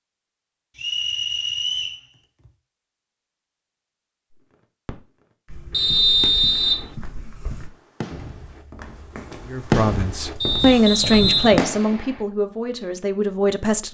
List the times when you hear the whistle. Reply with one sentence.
The whistle can be heard from 0.8 to 2.0 s, from 5.7 to 6.8 s and from 10.4 to 11.7 s.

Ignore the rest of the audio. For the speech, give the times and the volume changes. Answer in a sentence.
The speech can be heard from 9.4 to 13.8 s, getting louder then quieter.